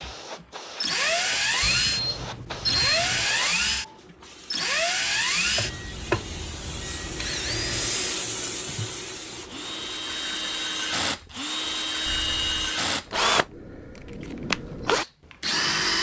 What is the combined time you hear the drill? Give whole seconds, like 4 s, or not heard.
16 s.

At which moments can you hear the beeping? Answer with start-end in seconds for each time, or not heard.
1.6-3.3, 5.6-7.8, 12.1-12.8.